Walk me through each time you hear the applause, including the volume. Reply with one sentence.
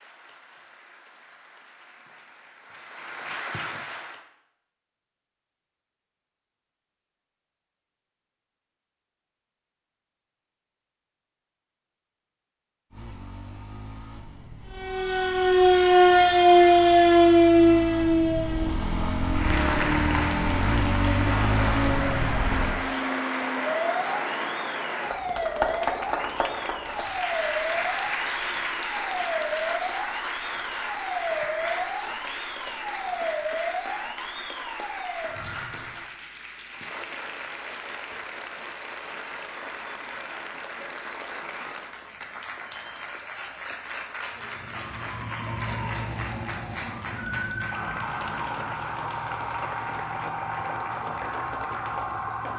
The applause can be heard from 0.0 to 4.2 s, getting louder; and from 19.2 to 52.5 s, getting quieter.